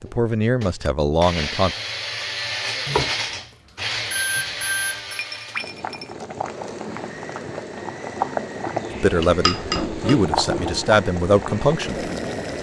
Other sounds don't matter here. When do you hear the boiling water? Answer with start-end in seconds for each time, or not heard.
5.5-12.5.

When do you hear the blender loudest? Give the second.
3 s.